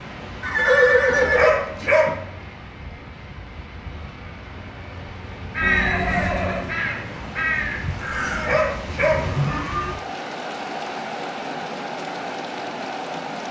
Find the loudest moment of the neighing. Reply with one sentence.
The loudest moment of the neighing is at 1 second.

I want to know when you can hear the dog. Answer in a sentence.
You can hear the dog from 1.1 to 2.2 s and from 8.2 to 9.3 s.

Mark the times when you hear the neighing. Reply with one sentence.
The neighing can be heard from 0.4 to 1.6 s, from 5.6 to 6.7 s and from 9.1 to 9.9 s.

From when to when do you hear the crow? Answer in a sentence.
The crow can be heard from 5.5 to 8.6 s.